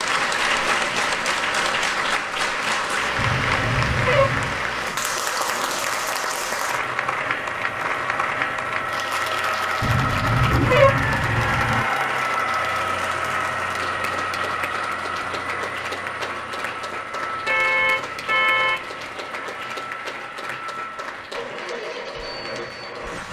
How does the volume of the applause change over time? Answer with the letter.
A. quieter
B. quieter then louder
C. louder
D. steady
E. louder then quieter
A.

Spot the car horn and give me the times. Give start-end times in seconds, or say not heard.
3.1-4.6, 9.8-11.8, 17.4-18.9.